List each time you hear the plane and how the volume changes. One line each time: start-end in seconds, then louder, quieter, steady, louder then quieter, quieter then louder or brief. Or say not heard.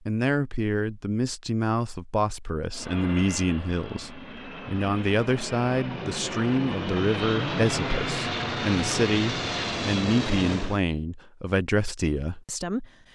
2.7-10.8 louder.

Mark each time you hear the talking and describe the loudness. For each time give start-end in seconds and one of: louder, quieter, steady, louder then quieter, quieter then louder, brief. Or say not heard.
0.1-12.8 steady.